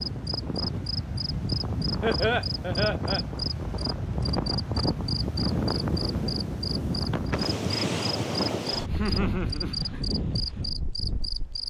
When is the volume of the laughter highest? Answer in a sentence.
The loudest moment of the laughter is at 2 seconds.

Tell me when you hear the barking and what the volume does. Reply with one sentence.
The barking can't be heard in this clip.